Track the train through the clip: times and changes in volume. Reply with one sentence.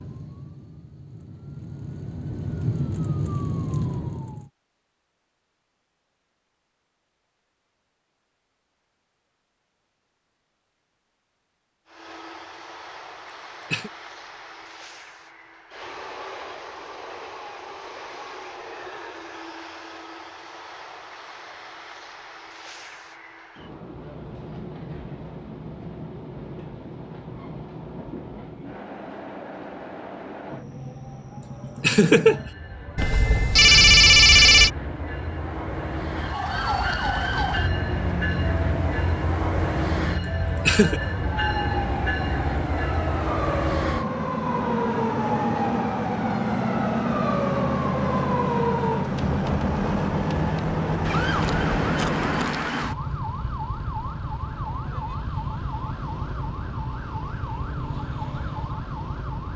You can hear the train from 11.8 to 52.6 s, getting louder.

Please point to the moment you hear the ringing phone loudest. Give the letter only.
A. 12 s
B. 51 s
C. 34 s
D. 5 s
C.